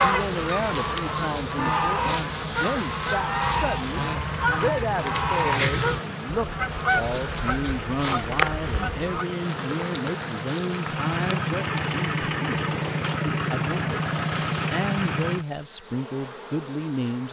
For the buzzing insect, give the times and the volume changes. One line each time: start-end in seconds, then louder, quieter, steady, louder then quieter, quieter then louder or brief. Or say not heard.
0.0-17.2 quieter.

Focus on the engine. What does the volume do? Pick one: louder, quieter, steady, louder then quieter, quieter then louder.
louder.